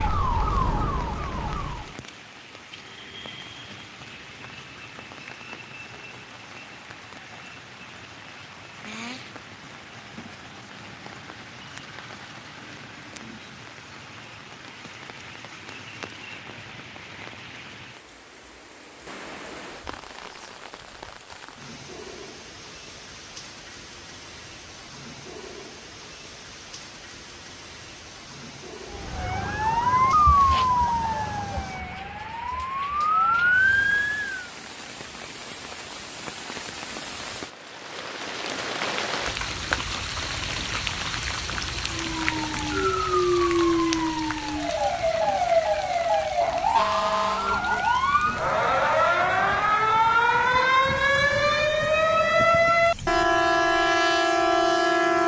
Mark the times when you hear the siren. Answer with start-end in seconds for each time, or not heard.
0.0-1.9, 28.9-34.5, 41.9-55.2.